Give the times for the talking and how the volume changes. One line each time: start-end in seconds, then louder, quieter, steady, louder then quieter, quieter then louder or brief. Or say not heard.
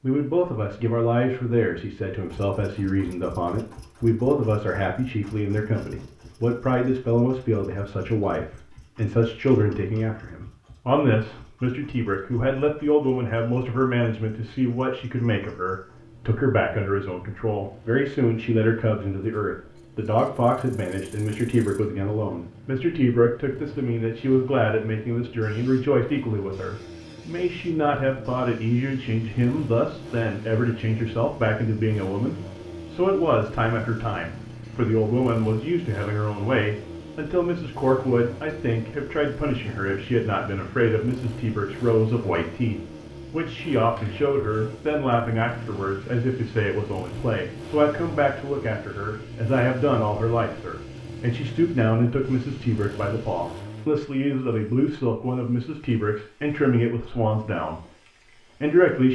0.0-57.8 steady
58.6-59.1 brief.